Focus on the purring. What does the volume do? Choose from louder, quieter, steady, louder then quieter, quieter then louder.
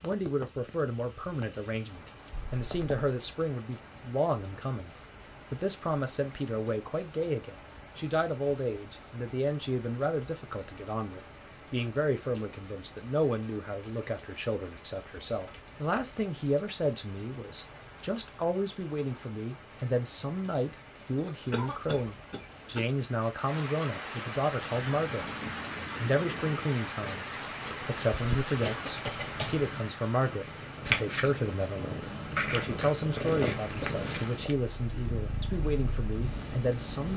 louder then quieter.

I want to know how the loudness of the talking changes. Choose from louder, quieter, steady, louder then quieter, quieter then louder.
steady.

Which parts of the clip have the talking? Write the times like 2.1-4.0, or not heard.
0.0-25.3, 25.9-37.1.